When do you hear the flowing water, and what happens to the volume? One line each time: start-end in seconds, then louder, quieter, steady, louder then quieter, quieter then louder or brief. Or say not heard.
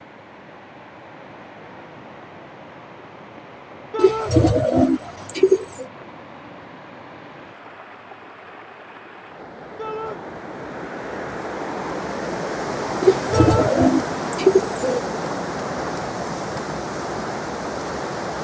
0.0-18.3 louder.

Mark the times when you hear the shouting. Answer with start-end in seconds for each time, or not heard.
3.9-4.3, 9.8-10.2, 13.3-13.8.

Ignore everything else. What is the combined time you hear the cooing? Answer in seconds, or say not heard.
4 s.